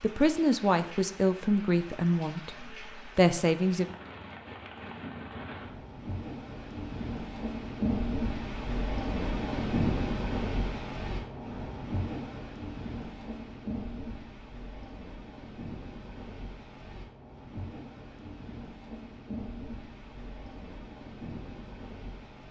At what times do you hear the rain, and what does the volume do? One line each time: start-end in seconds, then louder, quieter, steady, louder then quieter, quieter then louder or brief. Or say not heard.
0.0-22.4 louder then quieter.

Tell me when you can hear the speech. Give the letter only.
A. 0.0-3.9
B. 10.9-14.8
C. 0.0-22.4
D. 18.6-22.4
A.